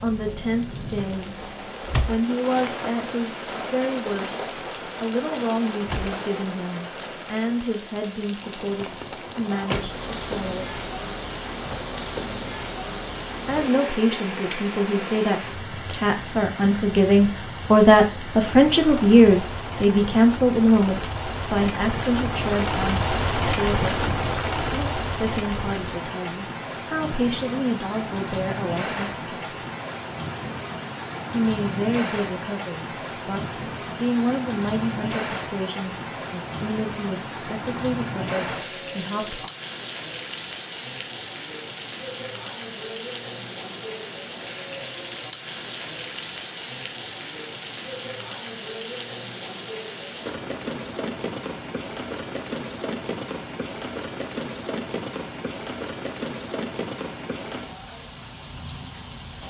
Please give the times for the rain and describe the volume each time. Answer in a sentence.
You can hear the rain from 0.0 to 59.4 s, at a steady volume.